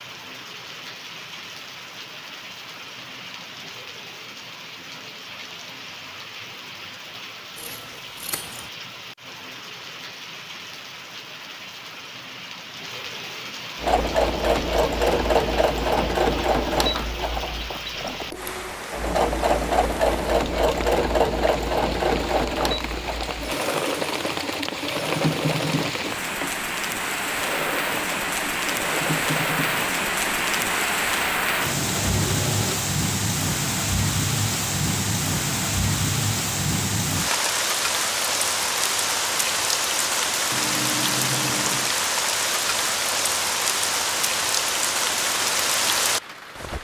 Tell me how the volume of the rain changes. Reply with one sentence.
The loudness of the rain goes up.